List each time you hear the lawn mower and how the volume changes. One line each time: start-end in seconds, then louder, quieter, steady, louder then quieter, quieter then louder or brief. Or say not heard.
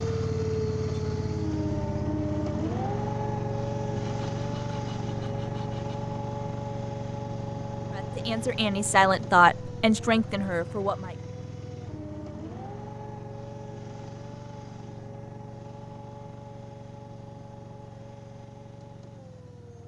0.0-19.8 quieter.